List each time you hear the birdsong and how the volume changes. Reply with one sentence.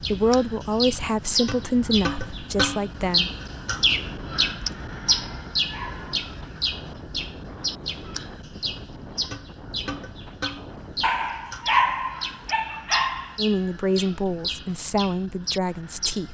The birdsong can be heard from 0.0 to 16.2 s, getting quieter.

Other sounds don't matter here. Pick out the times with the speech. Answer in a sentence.
The speech can be heard from 0.0 to 3.3 s and from 13.3 to 16.2 s.